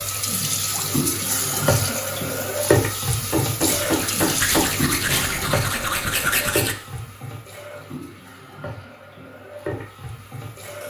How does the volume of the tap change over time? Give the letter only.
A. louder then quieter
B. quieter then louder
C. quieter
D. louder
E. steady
C.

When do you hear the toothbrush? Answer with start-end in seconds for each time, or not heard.
3.7-6.8.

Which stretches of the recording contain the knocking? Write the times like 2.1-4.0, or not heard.
3.3-5.2.